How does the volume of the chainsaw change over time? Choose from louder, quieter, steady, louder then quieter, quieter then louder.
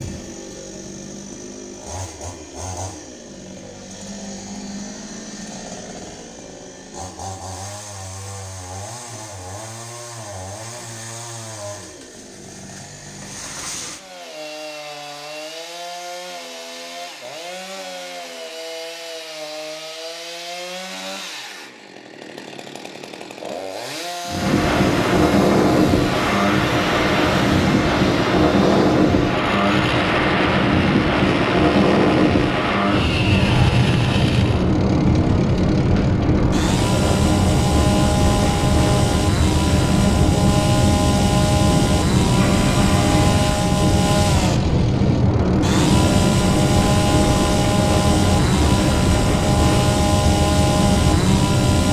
louder.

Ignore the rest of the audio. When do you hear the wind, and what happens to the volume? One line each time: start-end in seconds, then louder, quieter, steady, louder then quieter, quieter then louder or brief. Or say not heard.
24.2-51.8 steady.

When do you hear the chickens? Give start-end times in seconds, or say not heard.
not heard.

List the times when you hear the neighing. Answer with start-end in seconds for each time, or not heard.
42.3-43.4.